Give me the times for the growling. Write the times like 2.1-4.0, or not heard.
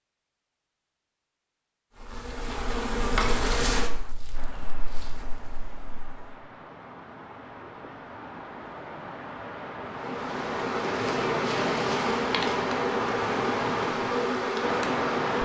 not heard.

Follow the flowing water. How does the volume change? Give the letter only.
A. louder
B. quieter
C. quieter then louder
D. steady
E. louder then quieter
A.